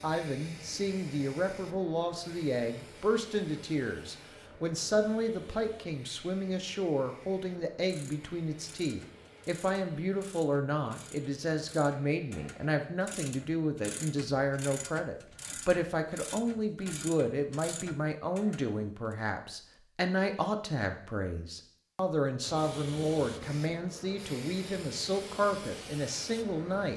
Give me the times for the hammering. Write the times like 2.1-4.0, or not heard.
not heard.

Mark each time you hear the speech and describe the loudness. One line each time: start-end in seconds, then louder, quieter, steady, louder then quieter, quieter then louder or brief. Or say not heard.
0.0-26.9 steady.